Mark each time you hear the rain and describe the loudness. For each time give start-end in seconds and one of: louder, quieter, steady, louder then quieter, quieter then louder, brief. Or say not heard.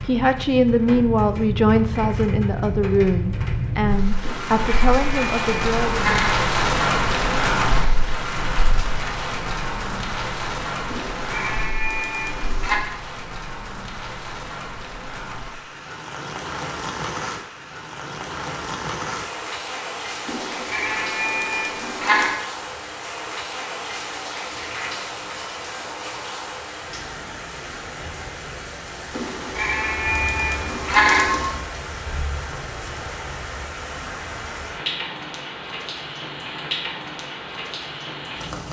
0.0-38.6 quieter.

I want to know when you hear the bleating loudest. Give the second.
31 s.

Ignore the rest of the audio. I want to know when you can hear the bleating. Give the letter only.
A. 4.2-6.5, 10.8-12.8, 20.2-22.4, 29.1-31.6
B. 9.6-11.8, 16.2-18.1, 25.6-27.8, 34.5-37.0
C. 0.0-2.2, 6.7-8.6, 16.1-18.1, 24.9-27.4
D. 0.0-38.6
A.